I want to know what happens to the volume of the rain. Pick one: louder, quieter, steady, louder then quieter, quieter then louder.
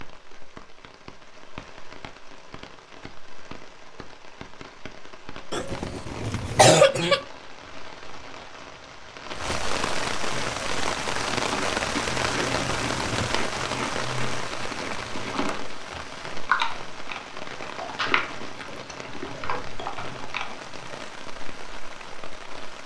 louder then quieter.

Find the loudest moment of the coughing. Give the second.
7 s.